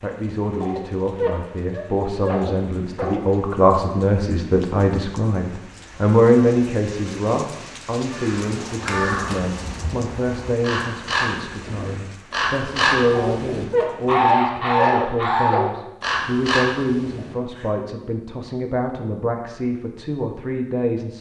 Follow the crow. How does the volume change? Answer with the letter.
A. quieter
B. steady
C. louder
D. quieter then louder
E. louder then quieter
E.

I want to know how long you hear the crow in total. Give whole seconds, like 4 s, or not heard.
10 s.